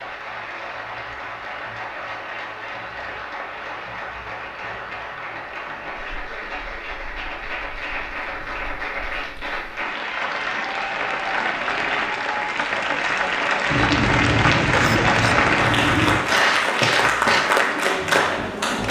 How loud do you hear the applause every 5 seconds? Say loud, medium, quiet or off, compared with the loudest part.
quiet, medium, loud, loud.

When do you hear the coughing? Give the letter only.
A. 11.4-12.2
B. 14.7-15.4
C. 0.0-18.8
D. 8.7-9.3
B.